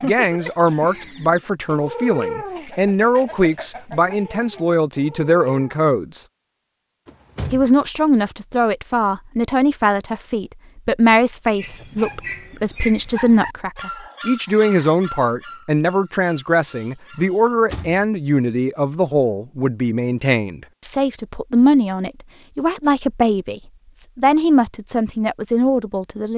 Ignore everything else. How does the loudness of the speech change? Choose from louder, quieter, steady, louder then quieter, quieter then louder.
steady.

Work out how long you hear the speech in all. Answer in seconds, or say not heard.
25 s.